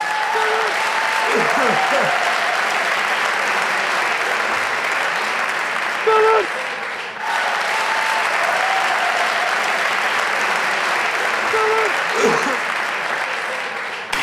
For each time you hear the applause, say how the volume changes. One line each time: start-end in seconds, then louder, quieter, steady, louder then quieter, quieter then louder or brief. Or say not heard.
0.0-14.1 steady.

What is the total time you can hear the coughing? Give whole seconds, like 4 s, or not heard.
2 s.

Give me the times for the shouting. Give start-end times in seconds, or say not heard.
0.3-0.8, 6.0-6.5, 11.5-11.9.